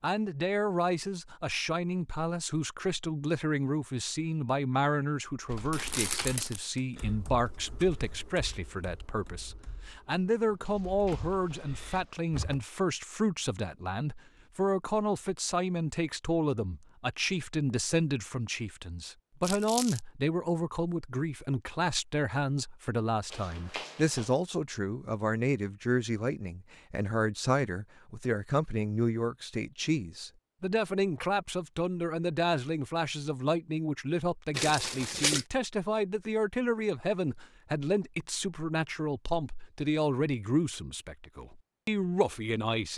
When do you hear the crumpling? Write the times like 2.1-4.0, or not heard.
5.7-6.8, 19.4-20.0, 34.5-35.5.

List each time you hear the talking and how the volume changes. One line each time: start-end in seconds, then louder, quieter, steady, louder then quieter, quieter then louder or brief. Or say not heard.
0.0-42.9 steady.